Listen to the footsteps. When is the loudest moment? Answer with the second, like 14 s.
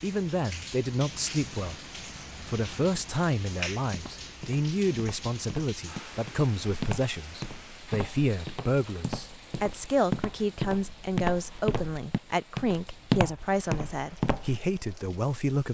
13 s.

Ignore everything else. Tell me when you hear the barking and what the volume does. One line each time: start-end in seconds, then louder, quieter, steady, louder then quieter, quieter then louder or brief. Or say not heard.
not heard.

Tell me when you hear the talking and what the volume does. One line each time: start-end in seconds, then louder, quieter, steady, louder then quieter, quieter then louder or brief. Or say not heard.
0.0-1.8 brief
2.5-15.6 steady.